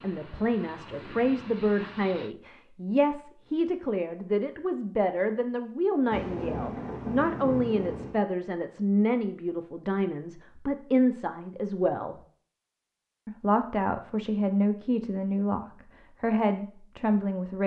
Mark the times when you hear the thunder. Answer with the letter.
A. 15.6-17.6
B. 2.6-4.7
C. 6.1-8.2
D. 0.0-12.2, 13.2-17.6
C.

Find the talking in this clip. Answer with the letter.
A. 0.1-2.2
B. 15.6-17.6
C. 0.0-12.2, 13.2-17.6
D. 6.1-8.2
C.